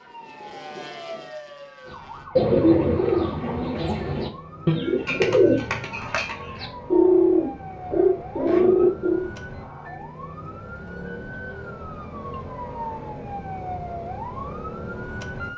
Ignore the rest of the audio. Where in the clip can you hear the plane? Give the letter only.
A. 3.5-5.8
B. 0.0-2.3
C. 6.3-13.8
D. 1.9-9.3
B.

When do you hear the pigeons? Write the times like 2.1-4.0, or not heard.
1.9-9.3.